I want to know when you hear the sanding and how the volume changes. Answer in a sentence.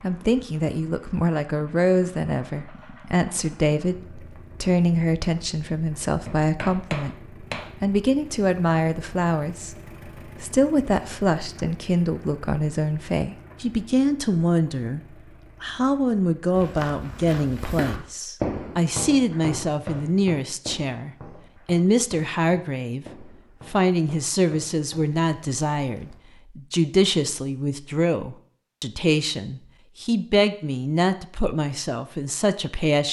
You can't hear the sanding here.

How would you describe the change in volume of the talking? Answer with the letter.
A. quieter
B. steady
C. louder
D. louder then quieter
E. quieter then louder
B.